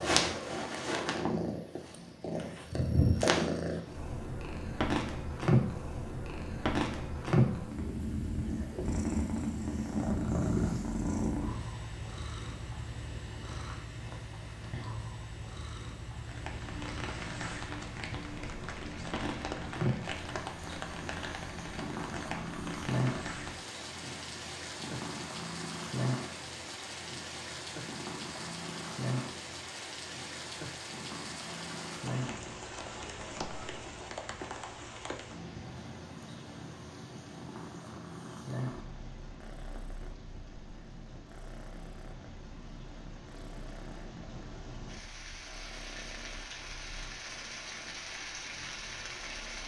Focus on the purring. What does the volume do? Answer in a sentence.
The volume of the purring goes down.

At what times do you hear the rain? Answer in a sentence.
You can hear the rain from 16.1 to 49.6 s.